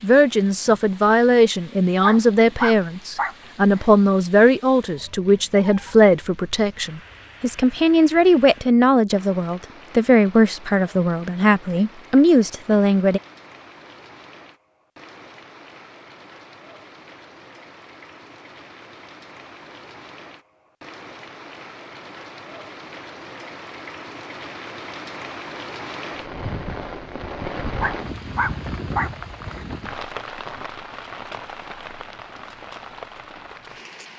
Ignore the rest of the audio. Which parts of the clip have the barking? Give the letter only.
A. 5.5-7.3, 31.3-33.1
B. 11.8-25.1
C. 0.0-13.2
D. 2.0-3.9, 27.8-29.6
D.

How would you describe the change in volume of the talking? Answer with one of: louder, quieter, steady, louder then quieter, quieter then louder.
steady.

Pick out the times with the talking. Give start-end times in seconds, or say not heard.
0.0-13.2.